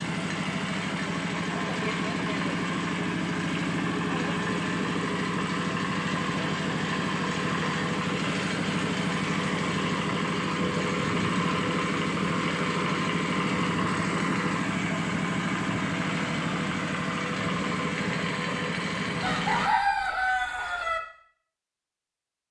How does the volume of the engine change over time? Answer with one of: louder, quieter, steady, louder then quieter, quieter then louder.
steady.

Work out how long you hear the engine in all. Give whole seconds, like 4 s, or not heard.
20 s.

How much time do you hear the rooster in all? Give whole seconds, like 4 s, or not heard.
2 s.